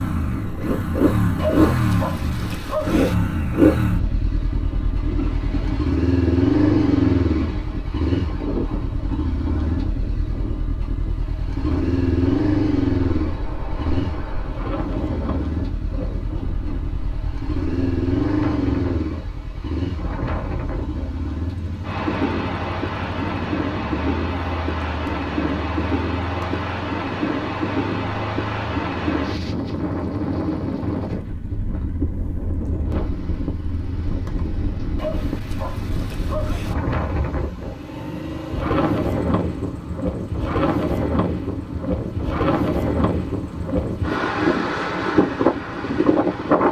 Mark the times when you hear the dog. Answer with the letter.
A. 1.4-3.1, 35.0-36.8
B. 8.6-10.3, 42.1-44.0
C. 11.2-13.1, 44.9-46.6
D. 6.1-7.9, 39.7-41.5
A.